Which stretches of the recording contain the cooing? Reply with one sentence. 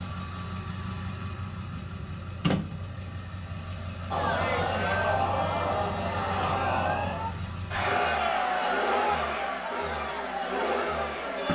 You can't hear the cooing here.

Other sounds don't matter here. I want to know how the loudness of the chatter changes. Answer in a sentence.
The loudness of the chatter goes down.